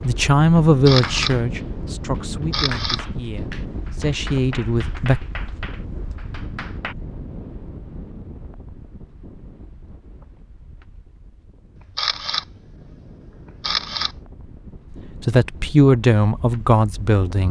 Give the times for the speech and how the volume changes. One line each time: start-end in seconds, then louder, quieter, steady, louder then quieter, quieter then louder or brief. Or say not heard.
0.0-5.2 quieter then louder
15.2-17.4 brief.